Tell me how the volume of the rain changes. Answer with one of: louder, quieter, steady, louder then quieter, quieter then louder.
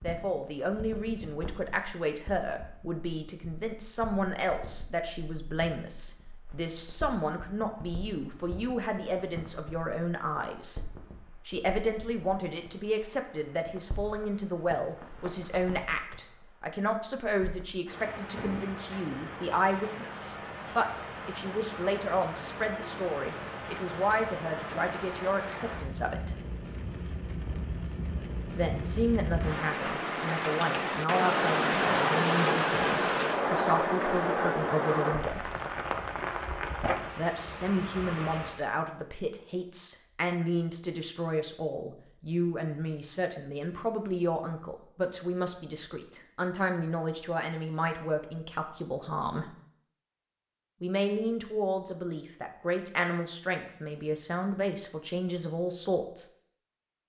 louder.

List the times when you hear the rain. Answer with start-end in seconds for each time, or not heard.
0.0-38.6.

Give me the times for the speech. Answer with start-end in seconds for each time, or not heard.
0.0-10.8, 11.4-26.4, 28.6-35.5, 37.1-49.5, 50.8-56.2.